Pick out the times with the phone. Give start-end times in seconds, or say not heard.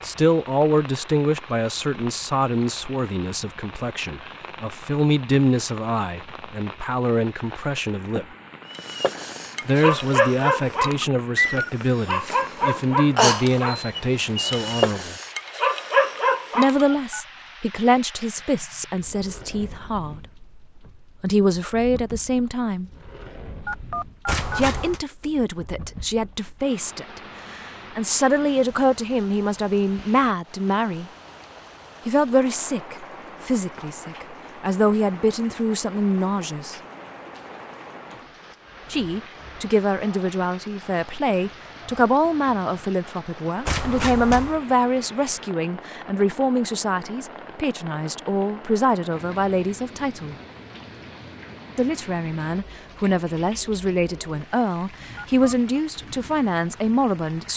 16.2-17.2, 23.6-24.6, 55.1-55.8.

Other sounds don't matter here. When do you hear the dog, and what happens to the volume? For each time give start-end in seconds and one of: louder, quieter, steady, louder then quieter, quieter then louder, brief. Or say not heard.
8.7-16.9 steady.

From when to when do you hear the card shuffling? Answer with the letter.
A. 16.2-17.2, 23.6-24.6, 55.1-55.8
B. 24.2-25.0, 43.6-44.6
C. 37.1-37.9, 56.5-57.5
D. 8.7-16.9
B.